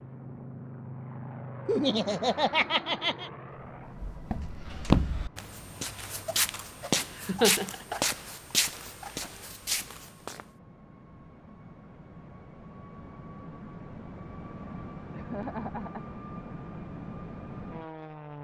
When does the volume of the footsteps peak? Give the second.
5 s.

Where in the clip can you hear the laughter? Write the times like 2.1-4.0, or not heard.
1.6-3.3, 7.2-8.0, 15.1-16.1.